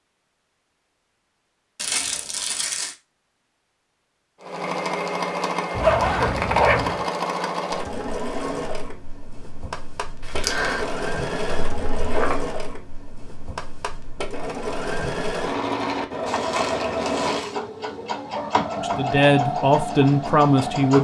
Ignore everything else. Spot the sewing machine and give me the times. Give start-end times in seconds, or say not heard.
4.4-20.9.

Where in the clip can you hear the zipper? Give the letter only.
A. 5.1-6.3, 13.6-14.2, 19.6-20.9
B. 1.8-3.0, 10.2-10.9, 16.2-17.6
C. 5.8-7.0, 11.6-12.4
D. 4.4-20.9
C.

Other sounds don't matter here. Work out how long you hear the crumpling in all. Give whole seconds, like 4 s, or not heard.
3 s.